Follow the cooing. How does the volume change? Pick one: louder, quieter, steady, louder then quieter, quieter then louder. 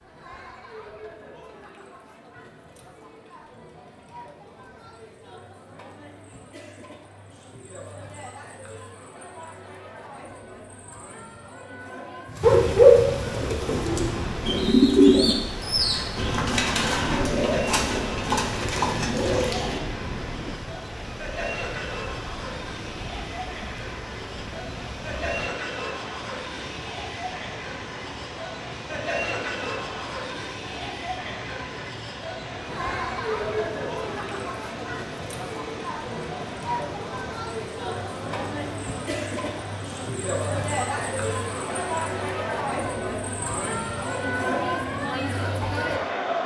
quieter.